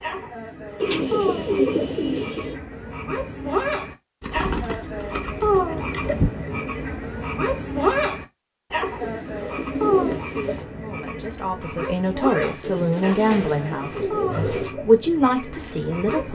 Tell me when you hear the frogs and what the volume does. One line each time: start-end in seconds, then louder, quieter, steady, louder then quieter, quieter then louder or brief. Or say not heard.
0.0-16.3 louder then quieter.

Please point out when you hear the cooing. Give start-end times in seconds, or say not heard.
0.8-2.5, 4.2-6.3, 8.8-10.7, 12.6-14.8.